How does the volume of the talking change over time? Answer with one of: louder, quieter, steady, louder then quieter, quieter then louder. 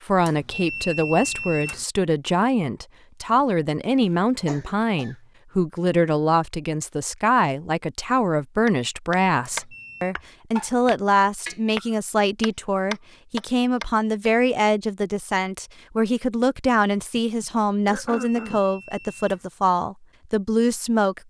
steady.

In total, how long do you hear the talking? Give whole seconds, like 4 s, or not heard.
21 s.